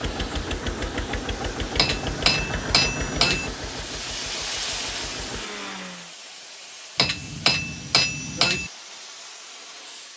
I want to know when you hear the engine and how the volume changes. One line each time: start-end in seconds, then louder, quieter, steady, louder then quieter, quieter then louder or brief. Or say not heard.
0.0-6.1 quieter.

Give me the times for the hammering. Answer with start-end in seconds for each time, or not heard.
1.8-3.5, 7.0-8.7.